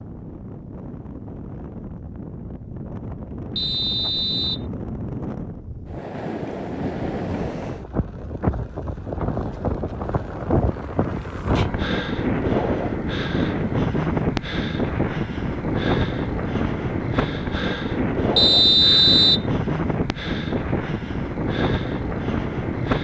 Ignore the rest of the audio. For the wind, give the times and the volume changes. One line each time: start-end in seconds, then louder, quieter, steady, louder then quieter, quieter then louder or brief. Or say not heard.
0.0-22.9 louder.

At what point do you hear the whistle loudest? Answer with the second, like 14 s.
19 s.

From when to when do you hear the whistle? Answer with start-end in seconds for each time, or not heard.
3.5-4.7, 18.4-19.4.